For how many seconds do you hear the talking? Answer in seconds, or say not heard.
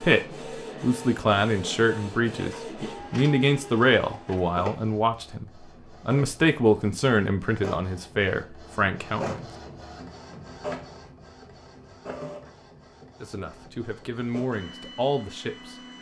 12 s.